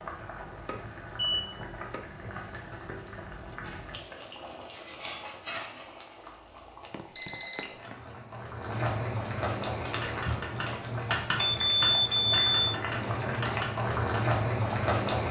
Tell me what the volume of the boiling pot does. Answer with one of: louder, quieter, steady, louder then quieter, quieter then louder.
louder.